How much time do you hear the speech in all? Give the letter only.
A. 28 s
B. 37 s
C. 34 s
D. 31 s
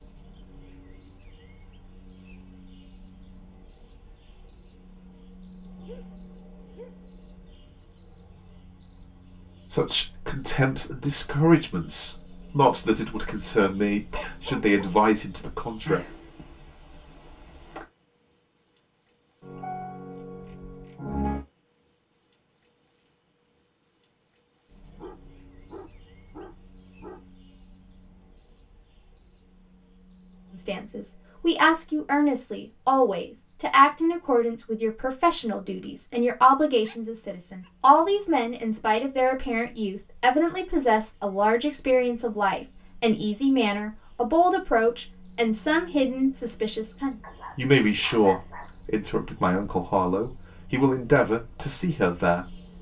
A.